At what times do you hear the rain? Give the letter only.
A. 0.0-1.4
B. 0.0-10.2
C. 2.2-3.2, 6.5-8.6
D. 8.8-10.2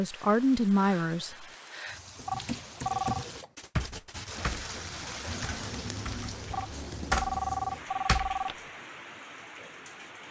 B.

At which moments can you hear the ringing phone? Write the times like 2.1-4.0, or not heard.
2.2-3.2, 6.5-8.6.